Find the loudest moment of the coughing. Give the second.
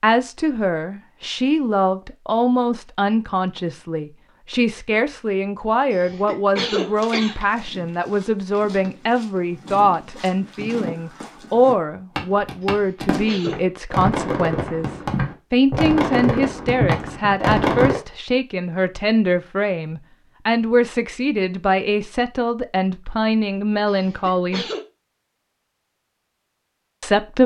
7 s.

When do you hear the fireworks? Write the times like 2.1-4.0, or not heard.
12.2-18.0.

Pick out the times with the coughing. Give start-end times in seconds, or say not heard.
5.9-7.3, 12.7-13.6, 23.9-24.8.